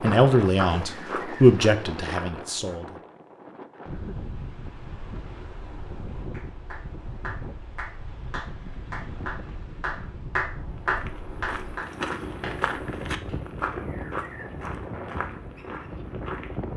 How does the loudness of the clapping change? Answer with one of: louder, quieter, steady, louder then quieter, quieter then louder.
louder then quieter.